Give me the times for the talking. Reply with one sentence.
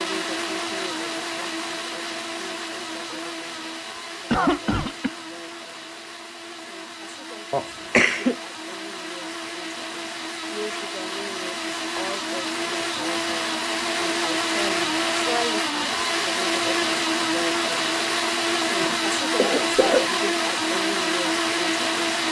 The talking can't be heard in this clip.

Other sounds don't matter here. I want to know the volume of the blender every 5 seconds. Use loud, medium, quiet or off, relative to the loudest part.
medium, quiet, loud, loud, loud.